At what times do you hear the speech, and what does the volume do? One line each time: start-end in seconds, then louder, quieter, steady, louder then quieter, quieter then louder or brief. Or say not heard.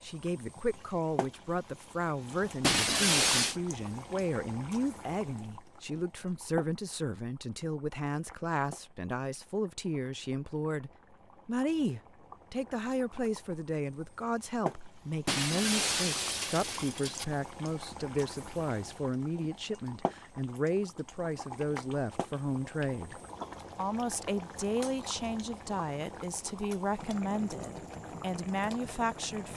0.0-29.5 steady.